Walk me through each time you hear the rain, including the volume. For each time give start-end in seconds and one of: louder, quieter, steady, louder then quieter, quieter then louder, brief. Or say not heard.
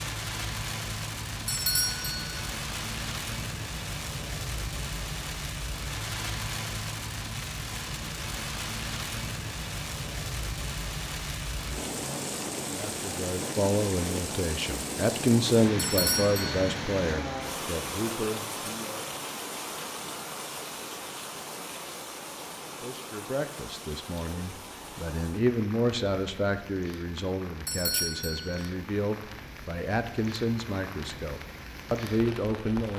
0.0-32.9 quieter.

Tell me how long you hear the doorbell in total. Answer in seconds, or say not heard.
3 s.